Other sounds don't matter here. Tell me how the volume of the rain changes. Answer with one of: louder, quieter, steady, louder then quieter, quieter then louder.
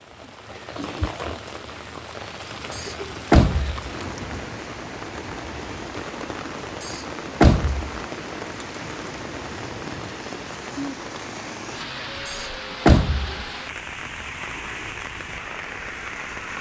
steady.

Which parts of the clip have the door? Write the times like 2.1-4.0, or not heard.
2.7-3.9, 6.8-8.0, 12.2-13.4.